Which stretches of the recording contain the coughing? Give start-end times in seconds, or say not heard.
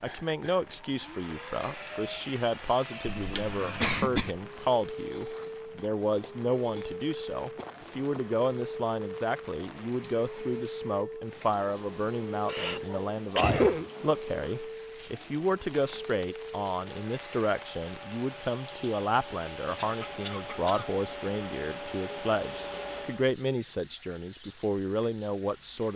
3.0-4.3, 12.4-13.8, 19.8-21.0.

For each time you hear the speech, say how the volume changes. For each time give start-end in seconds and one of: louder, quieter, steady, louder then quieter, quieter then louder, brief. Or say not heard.
0.0-25.9 steady.